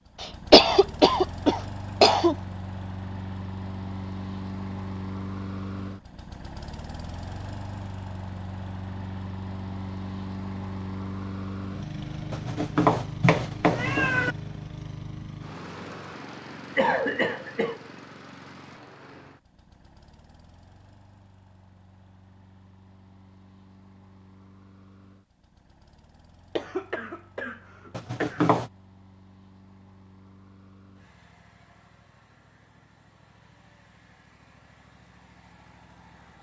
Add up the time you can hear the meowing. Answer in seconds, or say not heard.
3 s.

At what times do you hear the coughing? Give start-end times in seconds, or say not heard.
0.2-2.4, 16.8-17.8, 26.6-28.6.